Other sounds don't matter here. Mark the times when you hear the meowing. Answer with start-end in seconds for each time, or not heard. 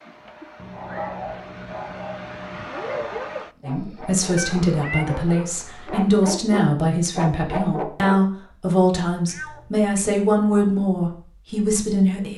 0.6-2.6, 4.3-6.0, 9.2-9.7.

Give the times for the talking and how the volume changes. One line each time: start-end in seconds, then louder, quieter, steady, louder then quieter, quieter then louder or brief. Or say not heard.
3.6-12.3 steady.